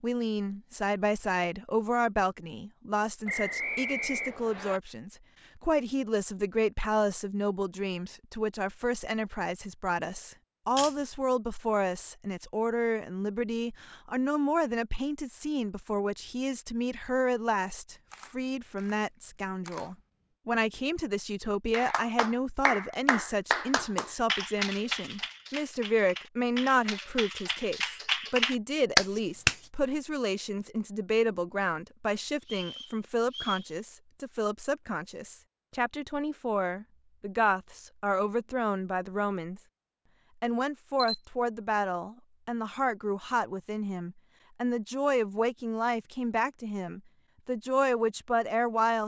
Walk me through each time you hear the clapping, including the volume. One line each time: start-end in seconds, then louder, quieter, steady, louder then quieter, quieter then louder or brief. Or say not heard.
21.7-29.6 quieter then louder.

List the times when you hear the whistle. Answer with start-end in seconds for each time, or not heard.
3.2-4.8, 32.4-33.7.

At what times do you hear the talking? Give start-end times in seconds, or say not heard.
0.0-39.6, 40.4-49.0.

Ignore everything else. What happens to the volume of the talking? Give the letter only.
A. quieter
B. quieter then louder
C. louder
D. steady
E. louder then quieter
D.